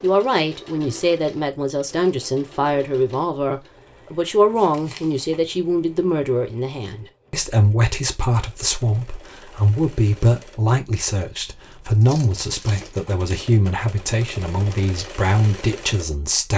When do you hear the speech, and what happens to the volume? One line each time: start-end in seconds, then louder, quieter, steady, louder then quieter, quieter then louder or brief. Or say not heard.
0.0-16.5 steady.